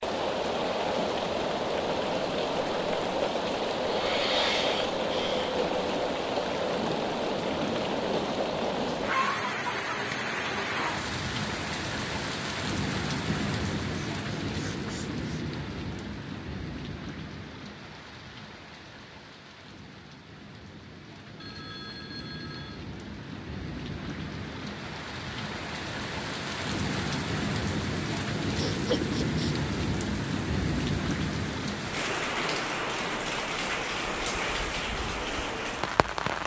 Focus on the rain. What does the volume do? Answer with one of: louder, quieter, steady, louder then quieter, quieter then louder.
quieter then louder.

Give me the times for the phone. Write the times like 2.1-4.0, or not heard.
21.4-22.9.